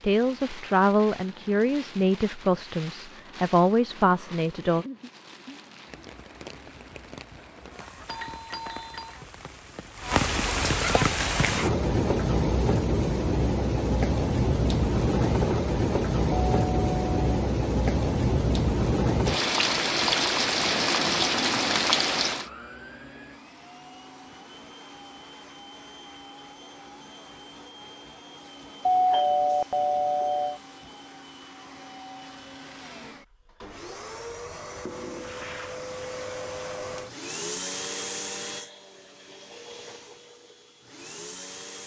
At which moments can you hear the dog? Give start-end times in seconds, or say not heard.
not heard.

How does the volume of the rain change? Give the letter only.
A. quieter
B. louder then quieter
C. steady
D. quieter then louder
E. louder
E.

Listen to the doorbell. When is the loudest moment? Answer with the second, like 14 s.
29 s.